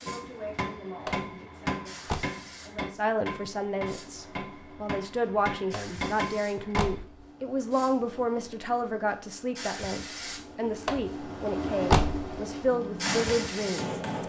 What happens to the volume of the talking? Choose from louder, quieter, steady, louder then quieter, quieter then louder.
louder.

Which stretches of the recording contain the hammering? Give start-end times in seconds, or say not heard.
0.1-7.0, 12.7-14.2.